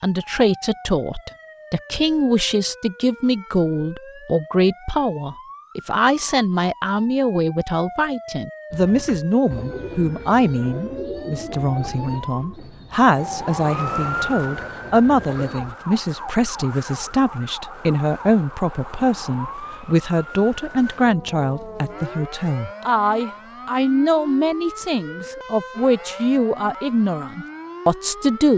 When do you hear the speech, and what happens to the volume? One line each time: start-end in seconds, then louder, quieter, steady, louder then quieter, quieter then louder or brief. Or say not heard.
0.0-28.5 steady.